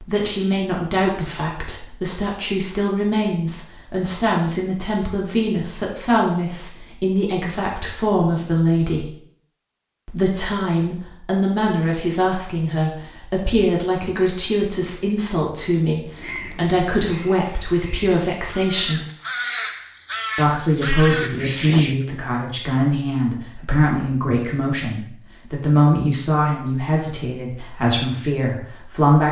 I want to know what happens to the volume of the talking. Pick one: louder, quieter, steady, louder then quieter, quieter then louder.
steady.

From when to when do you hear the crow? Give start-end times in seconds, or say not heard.
16.1-21.9.